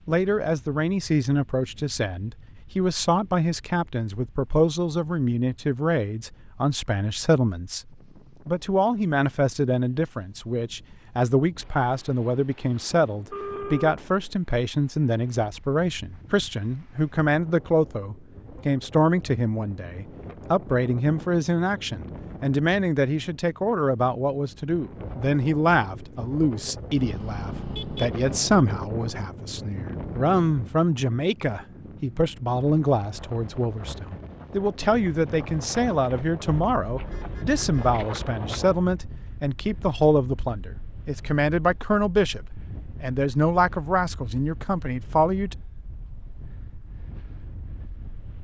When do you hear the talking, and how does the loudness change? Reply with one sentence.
The talking can be heard from 0.1 to 45.5 s, at a steady volume.